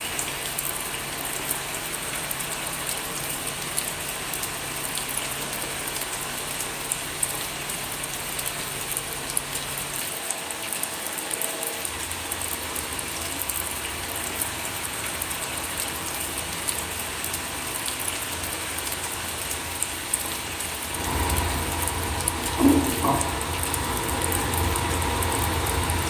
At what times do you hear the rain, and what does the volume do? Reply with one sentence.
You can hear the rain from 0.0 to 26.0 s, at a steady volume.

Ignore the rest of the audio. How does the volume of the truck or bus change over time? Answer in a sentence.
The loudness of the truck or bus goes up.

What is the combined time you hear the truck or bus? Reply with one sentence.
You can hear the truck or bus for 26 seconds altogether.